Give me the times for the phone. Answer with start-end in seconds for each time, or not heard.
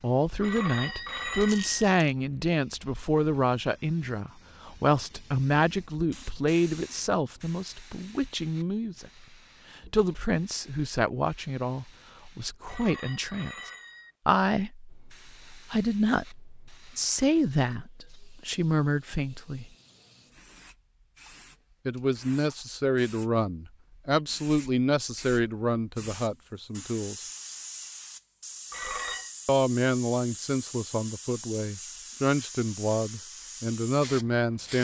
0.4-1.9, 12.7-14.2, 28.7-29.3.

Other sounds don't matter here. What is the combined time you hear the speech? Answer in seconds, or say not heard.
30 s.